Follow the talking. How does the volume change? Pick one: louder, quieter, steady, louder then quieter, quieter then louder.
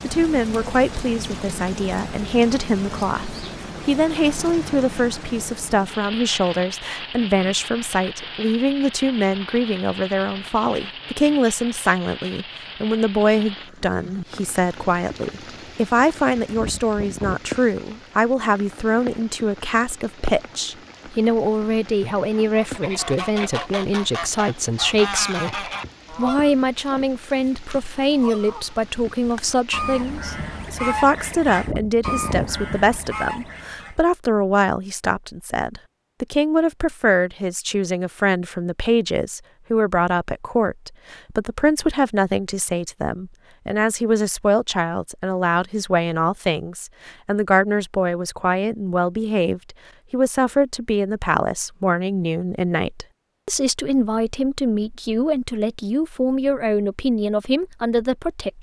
steady.